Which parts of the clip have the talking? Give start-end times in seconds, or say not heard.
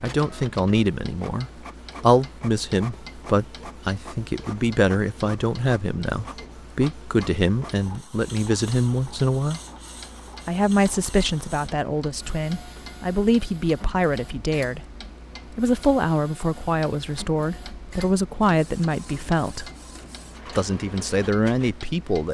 0.0-9.6, 10.4-14.8, 15.6-19.7, 20.6-22.2.